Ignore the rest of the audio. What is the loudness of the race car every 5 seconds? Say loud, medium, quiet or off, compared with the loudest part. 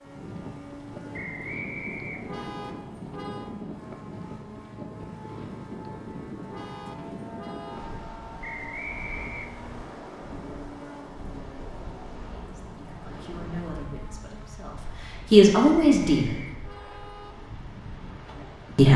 loud, loud, loud, off.